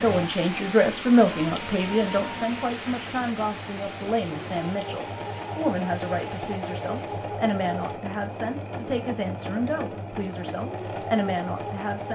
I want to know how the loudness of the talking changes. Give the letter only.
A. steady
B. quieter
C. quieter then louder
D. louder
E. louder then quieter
B.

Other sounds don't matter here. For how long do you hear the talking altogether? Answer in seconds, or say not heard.
12 s.